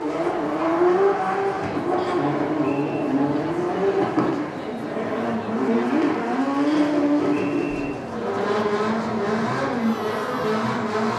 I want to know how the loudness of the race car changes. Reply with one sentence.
The loudness of the race car stays about the same.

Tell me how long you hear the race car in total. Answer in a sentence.
You can hear the race car for 11 seconds altogether.